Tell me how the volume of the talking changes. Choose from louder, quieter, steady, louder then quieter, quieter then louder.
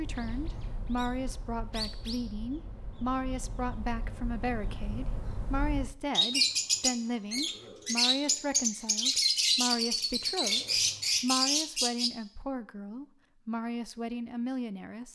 steady.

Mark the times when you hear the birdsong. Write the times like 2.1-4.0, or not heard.
0.0-12.1.